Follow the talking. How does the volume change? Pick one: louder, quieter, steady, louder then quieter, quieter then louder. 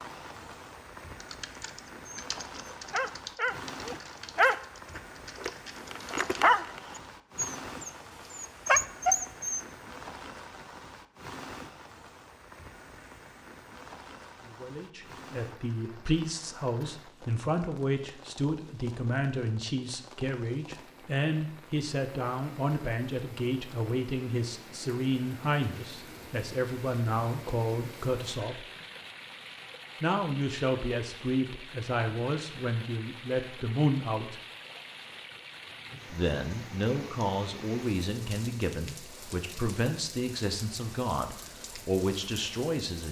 steady.